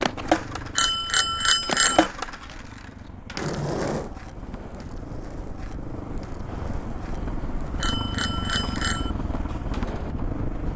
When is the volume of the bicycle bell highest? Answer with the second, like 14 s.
2 s.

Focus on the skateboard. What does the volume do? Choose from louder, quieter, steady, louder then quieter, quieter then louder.
quieter.